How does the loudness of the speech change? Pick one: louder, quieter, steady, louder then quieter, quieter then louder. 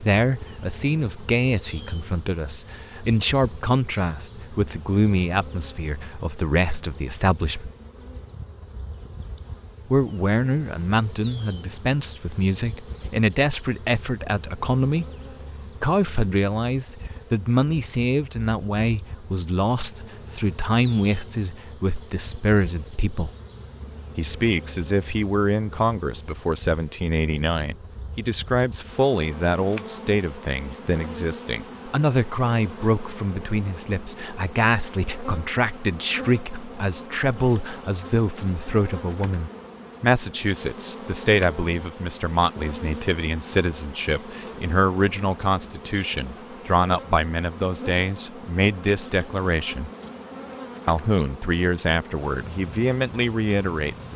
steady.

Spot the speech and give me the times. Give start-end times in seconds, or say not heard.
0.0-7.7, 9.8-15.1, 15.8-23.3, 24.1-49.9, 50.9-54.1.